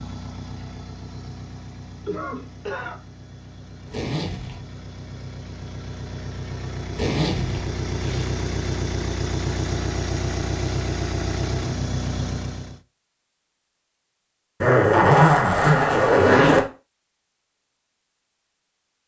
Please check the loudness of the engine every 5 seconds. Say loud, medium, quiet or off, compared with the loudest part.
quiet, loud, loud, off.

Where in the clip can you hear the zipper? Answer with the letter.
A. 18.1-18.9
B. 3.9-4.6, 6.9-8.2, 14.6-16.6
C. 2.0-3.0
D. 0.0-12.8
B.